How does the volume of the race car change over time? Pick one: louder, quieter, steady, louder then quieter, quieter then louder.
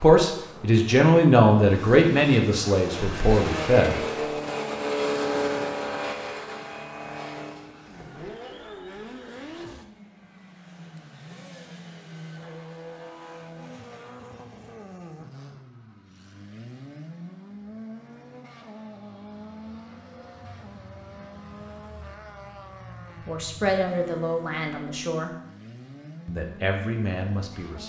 quieter.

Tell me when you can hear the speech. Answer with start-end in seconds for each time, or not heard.
0.0-4.0, 23.2-25.3, 26.2-27.8.